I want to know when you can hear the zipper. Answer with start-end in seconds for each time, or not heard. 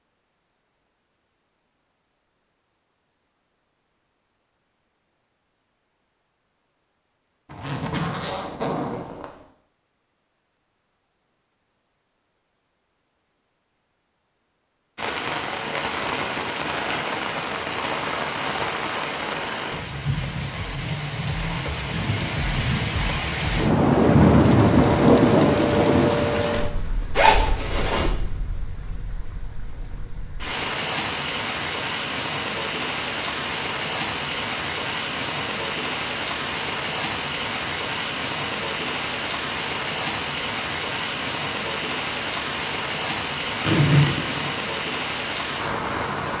7.5-9.3, 27.1-28.1, 43.6-44.5.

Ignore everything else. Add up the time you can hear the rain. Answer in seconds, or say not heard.
31 s.